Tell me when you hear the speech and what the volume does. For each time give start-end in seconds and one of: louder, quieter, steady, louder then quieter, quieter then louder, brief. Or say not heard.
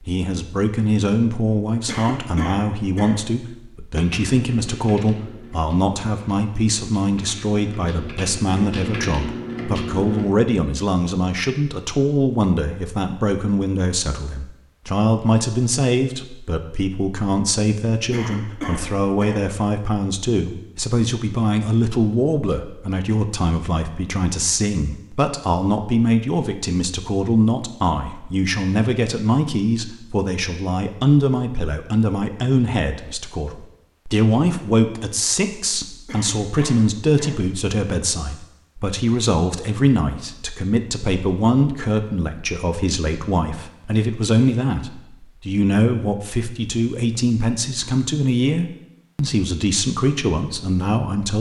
0.0-51.3 steady.